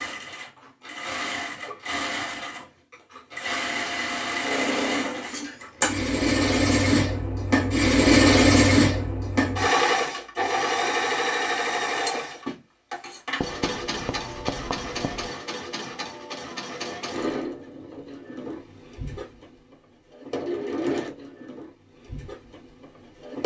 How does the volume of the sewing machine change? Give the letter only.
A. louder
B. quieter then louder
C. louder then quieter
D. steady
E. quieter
C.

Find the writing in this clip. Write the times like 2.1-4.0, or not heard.
13.4-15.3.